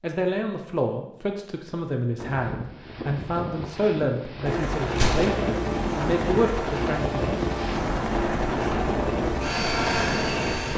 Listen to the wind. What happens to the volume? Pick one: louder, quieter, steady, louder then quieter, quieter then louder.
louder.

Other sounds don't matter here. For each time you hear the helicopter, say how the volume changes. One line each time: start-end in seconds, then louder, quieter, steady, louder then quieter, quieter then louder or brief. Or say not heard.
4.5-10.7 steady.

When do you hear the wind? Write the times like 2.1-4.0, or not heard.
2.1-10.7.